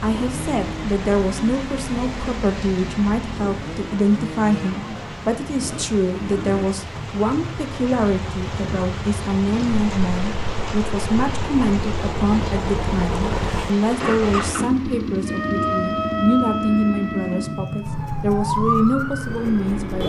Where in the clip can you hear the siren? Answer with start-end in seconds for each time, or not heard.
15.2-20.0.